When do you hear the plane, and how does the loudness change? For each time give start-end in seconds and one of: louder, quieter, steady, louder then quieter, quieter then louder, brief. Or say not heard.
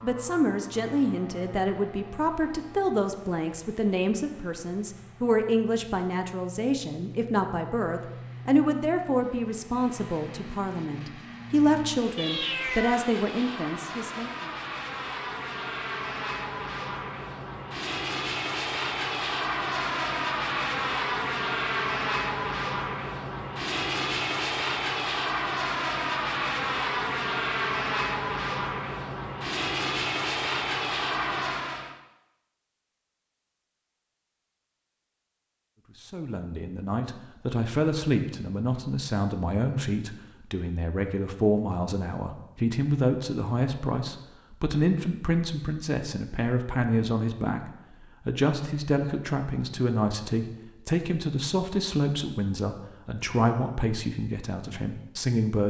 0.0-31.9 louder.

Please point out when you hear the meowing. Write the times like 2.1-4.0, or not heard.
12.2-13.1.